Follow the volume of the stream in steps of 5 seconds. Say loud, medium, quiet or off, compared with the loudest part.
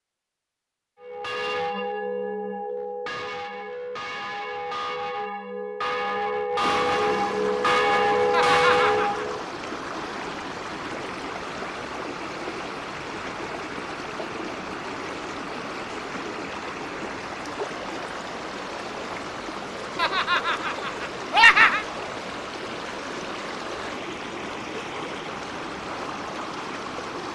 off, loud, loud, loud, loud, loud.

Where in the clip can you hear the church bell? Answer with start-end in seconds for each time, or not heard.
1.0-9.4.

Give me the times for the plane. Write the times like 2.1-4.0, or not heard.
not heard.